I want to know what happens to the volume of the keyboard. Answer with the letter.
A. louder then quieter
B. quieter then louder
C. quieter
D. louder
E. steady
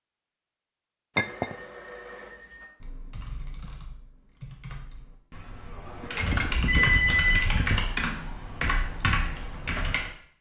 D.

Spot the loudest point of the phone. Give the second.
7 s.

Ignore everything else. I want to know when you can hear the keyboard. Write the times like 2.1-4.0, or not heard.
2.8-10.1.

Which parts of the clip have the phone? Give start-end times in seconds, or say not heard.
1.1-2.6, 6.2-7.8.